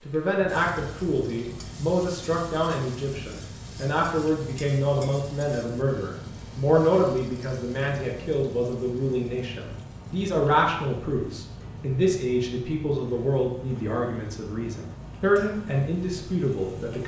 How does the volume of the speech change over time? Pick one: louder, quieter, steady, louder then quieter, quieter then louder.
steady.